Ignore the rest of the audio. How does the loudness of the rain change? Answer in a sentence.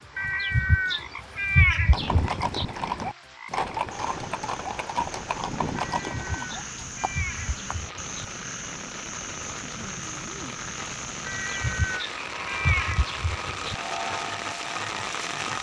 The volume of the rain goes up.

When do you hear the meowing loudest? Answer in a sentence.
The loudest moment of the meowing is at 2 seconds.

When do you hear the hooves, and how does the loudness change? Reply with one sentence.
You can hear the hooves from 1.9 to 7.8 s, getting quieter.